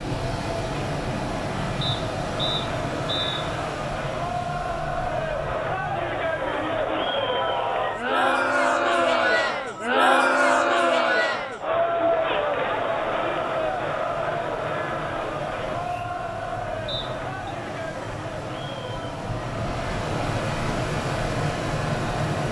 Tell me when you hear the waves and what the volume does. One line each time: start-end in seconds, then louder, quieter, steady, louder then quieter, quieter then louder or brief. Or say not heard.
0.0-22.4 quieter then louder.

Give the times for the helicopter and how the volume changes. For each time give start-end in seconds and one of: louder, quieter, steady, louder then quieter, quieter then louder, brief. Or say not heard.
not heard.